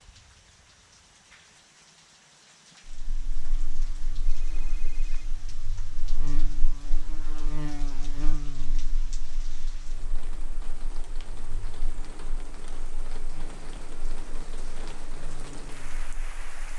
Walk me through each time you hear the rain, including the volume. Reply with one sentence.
You can hear the rain from 0.0 to 16.7 s, getting louder.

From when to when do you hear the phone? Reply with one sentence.
You can hear the phone from 4.2 to 5.3 s.